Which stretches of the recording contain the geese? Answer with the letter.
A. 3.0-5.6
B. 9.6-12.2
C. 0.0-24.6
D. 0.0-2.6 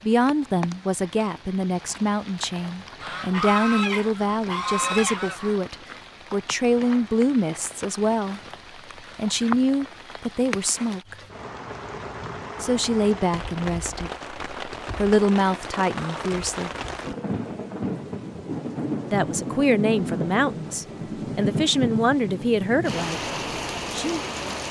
A.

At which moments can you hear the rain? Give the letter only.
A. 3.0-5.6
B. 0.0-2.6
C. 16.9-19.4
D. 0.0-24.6
D.